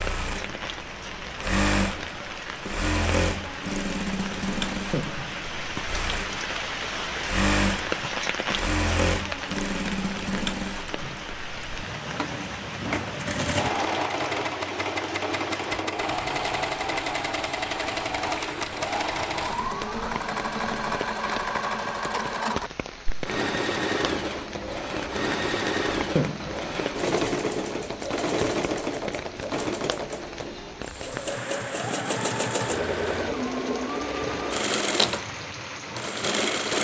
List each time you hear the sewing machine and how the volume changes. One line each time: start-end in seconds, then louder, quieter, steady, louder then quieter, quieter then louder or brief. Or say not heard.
0.0-36.7 steady.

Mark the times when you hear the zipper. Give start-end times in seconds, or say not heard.
4.9-5.7, 26.1-26.9.